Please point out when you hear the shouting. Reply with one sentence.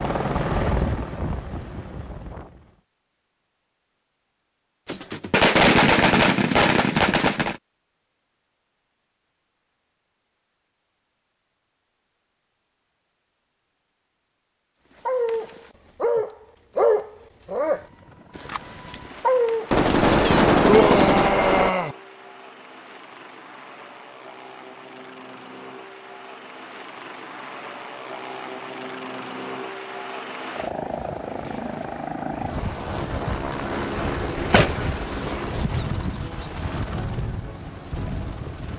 You can hear the shouting from 20.6 to 21.9 s.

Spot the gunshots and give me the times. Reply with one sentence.
You can hear the gunshots from 4.8 to 7.5 s, from 19.7 to 21.7 s and from 34.5 to 35.0 s.